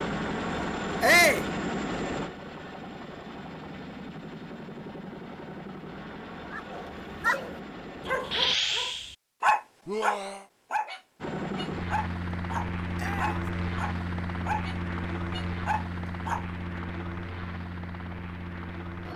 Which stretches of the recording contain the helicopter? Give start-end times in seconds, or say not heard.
0.0-8.6, 11.2-19.1.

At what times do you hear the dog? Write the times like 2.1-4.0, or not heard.
6.5-16.4.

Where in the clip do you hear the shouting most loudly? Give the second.
1 s.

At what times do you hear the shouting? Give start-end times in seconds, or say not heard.
1.0-1.4, 9.8-10.4, 12.9-13.4.